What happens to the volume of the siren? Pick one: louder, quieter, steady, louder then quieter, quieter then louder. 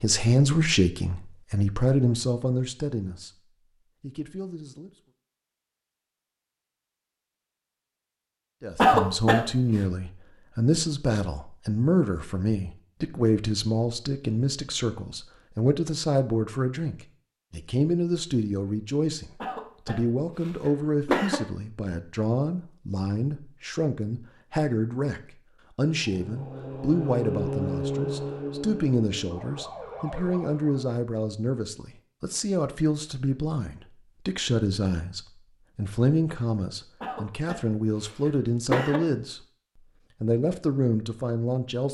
louder then quieter.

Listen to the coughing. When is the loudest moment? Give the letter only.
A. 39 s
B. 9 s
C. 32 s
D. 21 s
B.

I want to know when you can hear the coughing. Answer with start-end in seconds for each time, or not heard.
8.8-9.8, 19.4-21.4, 37.0-39.0.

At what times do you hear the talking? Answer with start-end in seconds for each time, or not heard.
0.0-3.3, 4.0-4.9, 8.6-39.4, 40.2-41.8.